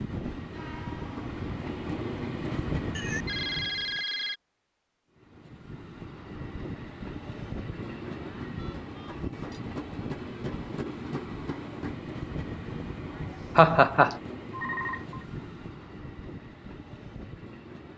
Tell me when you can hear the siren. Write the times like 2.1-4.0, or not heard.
not heard.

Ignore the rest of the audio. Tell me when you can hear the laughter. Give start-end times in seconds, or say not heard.
13.6-14.2.